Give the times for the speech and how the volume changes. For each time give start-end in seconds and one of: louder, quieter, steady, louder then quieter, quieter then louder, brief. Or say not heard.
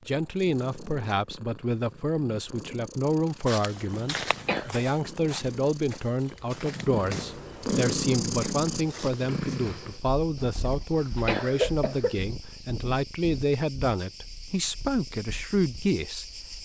0.1-16.6 steady.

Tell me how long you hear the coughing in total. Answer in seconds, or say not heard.
3 s.